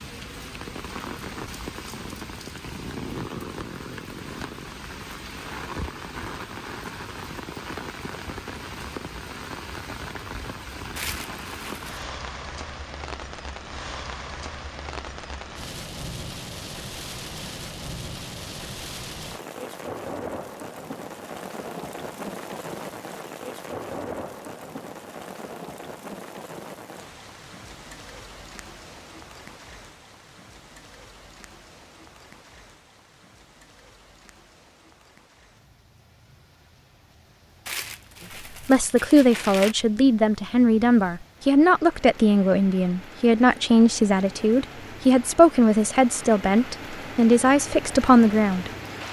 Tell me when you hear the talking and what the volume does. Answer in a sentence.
You can hear the talking from 38.6 to 49.0 s, at a steady volume.